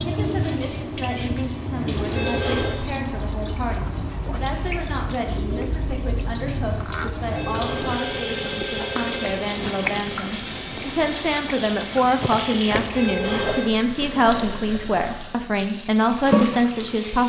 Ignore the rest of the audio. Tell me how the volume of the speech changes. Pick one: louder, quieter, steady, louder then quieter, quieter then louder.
louder.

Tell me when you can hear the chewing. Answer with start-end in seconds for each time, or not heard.
3.7-13.6.